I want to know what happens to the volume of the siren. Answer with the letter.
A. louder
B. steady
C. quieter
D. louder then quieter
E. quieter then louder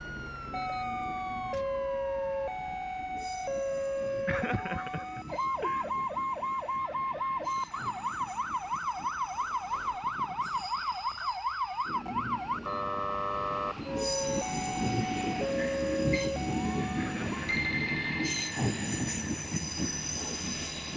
B.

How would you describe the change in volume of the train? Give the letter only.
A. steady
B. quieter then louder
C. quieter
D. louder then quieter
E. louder
E.